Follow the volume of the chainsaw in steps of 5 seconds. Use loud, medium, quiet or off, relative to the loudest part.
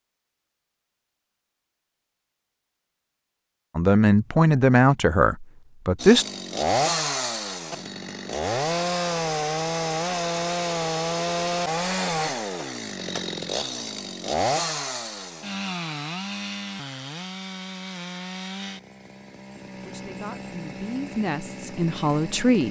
off, loud, loud, medium, medium.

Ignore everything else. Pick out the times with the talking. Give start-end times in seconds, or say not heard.
3.8-6.2, 19.8-22.6.